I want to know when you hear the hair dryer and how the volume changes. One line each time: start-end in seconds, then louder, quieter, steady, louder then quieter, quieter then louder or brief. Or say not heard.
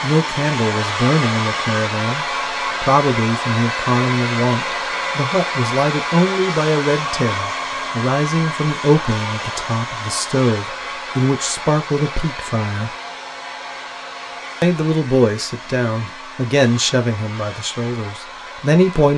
0.0-19.1 quieter.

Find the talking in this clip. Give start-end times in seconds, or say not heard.
0.0-12.9, 14.6-19.1.